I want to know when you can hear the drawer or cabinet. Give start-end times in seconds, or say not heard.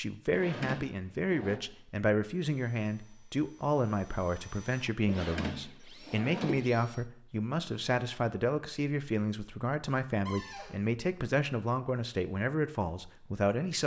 0.3-1.6, 5.0-6.7, 10.2-10.8.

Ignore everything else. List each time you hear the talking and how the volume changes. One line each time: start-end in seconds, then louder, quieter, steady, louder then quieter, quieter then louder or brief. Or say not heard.
0.0-13.8 steady.